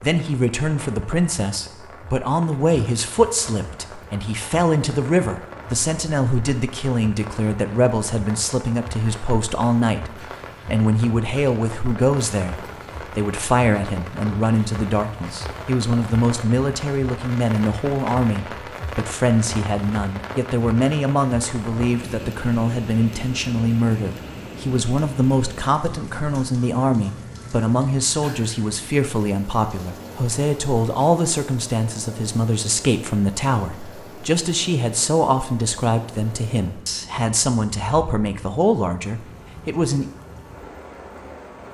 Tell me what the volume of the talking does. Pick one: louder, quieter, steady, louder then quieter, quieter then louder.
steady.